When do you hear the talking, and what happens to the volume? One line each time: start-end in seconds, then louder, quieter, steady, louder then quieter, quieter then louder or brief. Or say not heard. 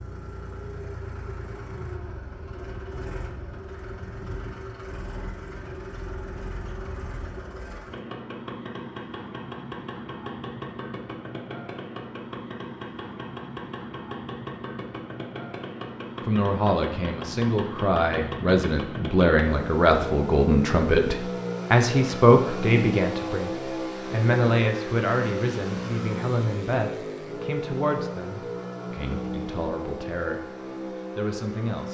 16.2-30.4 quieter
31.1-31.8 brief.